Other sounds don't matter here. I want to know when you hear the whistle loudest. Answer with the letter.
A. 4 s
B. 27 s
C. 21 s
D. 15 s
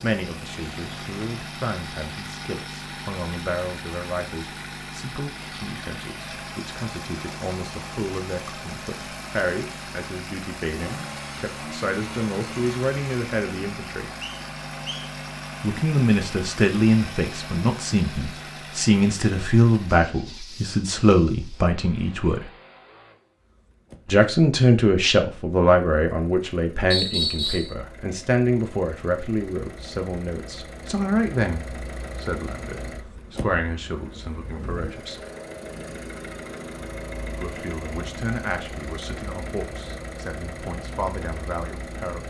B.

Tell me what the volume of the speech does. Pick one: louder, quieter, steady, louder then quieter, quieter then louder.
louder then quieter.